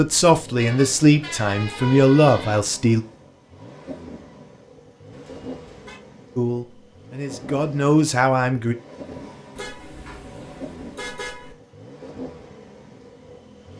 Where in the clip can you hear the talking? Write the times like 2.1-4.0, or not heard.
0.0-3.0, 6.3-8.8.